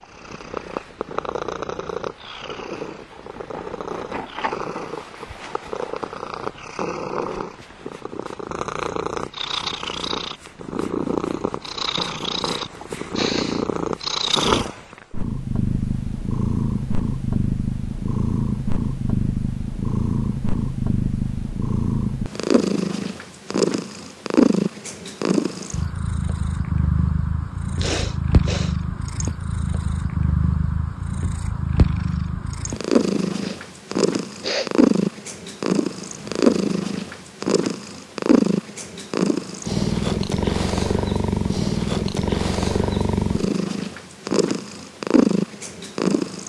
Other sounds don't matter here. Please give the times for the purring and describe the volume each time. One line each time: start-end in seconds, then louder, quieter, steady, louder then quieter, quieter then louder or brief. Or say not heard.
0.0-46.4 louder.